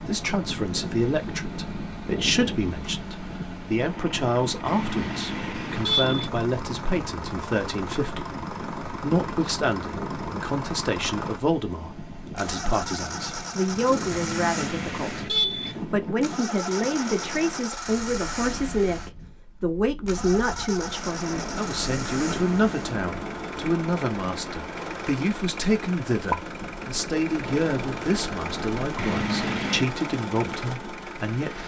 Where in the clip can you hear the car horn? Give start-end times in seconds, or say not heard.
4.7-6.3, 14.1-15.8, 28.9-29.9.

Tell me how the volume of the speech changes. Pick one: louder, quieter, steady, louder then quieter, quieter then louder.
steady.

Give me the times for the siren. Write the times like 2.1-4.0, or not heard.
not heard.